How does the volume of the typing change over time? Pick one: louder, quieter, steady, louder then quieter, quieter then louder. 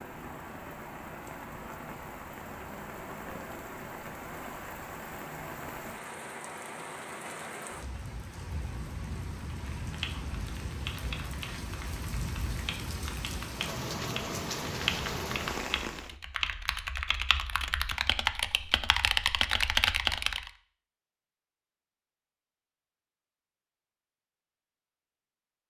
louder.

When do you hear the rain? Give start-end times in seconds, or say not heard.
0.0-16.1.